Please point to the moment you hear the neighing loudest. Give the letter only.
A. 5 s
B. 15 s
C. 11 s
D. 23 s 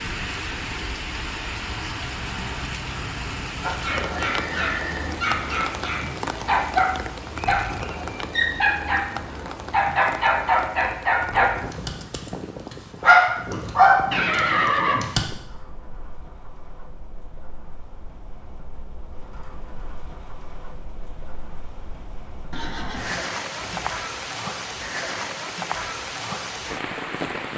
B.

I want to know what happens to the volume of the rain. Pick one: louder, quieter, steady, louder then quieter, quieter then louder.
quieter then louder.